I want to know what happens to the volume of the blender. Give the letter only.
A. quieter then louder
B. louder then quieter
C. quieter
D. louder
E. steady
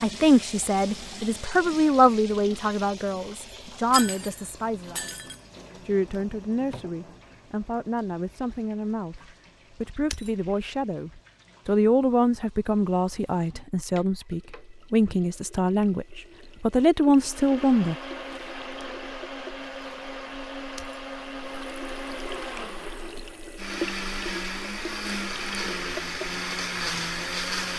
D.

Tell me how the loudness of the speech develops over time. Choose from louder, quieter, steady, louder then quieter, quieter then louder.
quieter then louder.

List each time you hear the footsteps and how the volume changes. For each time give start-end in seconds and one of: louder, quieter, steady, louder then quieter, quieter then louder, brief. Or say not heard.
not heard.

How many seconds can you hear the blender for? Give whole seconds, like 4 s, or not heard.
11 s.